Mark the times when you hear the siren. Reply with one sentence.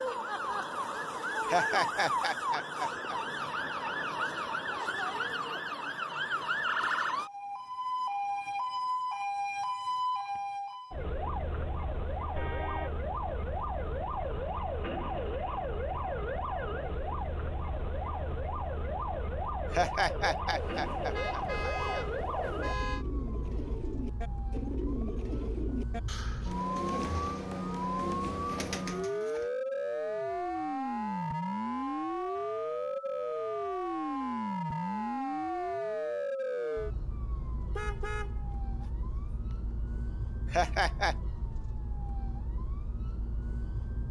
You can hear the siren from 0.0 to 44.0 s.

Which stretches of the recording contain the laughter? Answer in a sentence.
The laughter can be heard from 1.4 to 3.2 s, from 19.7 to 22.1 s and from 40.5 to 41.1 s.